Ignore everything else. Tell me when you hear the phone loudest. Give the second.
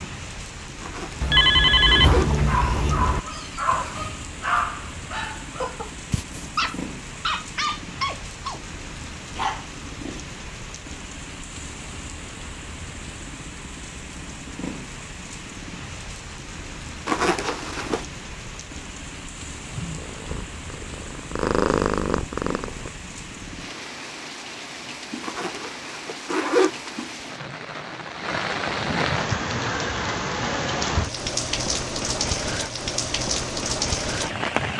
2 s.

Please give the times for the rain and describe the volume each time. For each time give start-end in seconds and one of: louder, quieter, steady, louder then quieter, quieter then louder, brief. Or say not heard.
0.0-34.7 louder.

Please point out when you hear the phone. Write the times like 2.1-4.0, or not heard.
1.2-3.2.